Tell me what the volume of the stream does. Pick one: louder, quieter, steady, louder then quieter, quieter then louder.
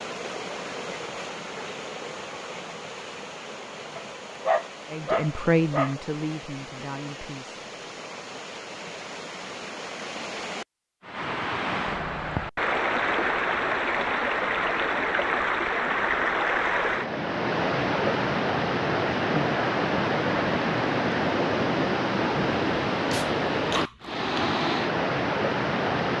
louder.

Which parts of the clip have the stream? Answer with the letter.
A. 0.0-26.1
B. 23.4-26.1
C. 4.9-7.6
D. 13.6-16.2
A.